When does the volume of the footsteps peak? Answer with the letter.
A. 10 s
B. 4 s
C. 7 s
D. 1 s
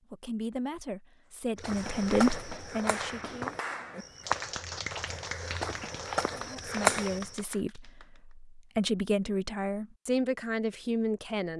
C.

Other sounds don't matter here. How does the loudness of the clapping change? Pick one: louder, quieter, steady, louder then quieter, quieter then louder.
quieter.